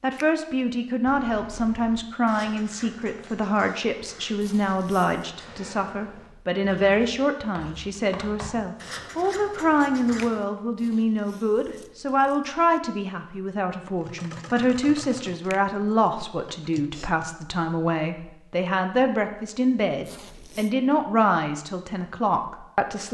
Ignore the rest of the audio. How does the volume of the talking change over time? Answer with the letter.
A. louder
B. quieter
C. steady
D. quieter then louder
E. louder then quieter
C.